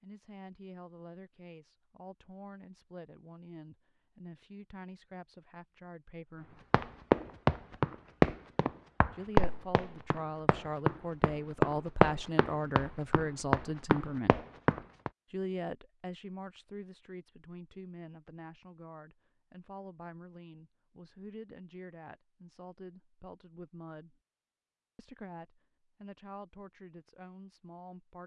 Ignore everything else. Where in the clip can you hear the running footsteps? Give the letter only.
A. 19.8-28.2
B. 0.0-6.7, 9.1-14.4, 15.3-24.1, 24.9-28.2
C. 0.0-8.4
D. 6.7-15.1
D.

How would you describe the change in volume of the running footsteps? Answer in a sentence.
The volume of the running footsteps goes down.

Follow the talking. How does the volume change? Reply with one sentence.
The loudness of the talking goes up, then down.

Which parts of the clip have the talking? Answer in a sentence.
You can hear the talking from 0.0 to 6.7 s, from 9.1 to 14.4 s, from 15.3 to 24.1 s and from 24.9 to 28.2 s.